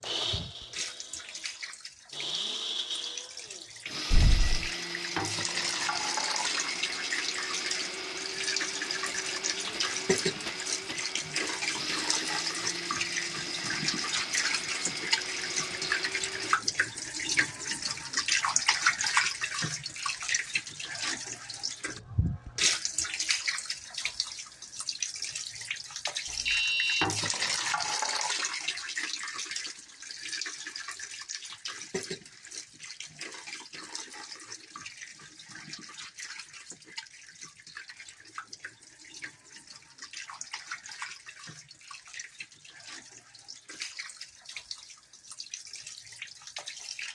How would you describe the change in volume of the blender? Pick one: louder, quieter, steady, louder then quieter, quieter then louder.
steady.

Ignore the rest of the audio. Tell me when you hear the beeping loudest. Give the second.
27 s.